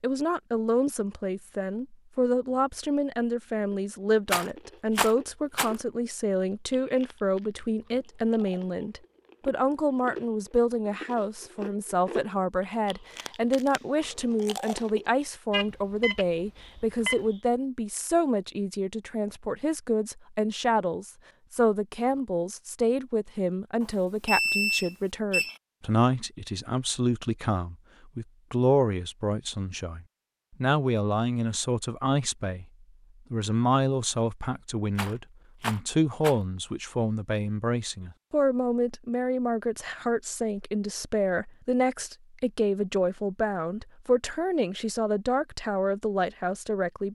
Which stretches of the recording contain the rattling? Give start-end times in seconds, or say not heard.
4.2-5.8, 35.0-36.4.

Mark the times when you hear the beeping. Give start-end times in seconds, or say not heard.
15.5-17.2, 23.8-25.6.